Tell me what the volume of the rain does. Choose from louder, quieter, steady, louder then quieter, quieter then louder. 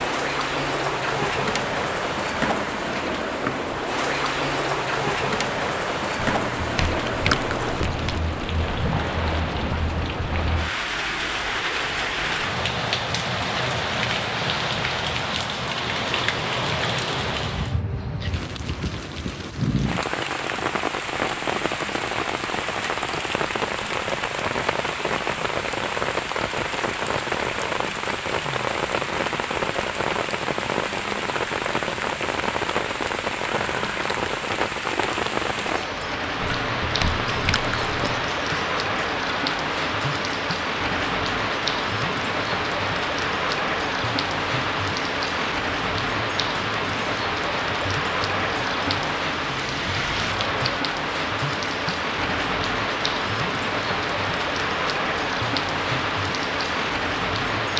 steady.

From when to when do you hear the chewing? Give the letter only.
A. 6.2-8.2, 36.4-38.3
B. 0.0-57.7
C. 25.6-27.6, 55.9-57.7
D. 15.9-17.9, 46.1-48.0
A.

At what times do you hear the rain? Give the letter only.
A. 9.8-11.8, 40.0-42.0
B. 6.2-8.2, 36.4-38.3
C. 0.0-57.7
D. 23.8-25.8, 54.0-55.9
C.